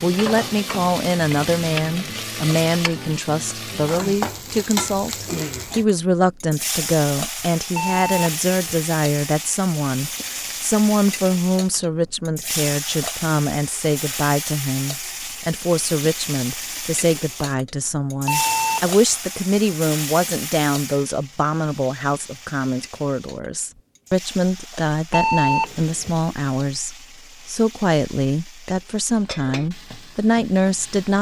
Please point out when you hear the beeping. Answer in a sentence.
The beeping can be heard from 7.8 to 8.8 s, from 18.2 to 18.9 s and from 25.1 to 26.2 s.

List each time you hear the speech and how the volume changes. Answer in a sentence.
The speech can be heard from 0.0 to 31.1 s, at a steady volume.